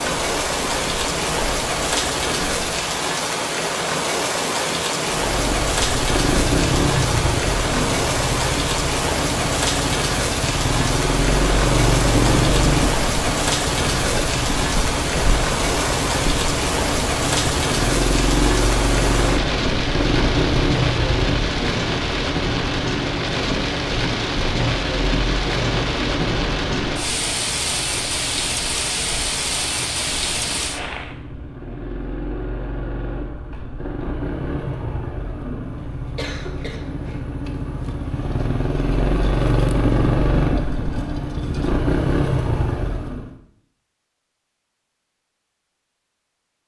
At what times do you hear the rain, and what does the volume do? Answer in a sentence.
The rain can be heard from 0.0 to 31.1 s, at a steady volume.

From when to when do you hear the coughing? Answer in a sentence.
The coughing can be heard from 36.1 to 37.2 s.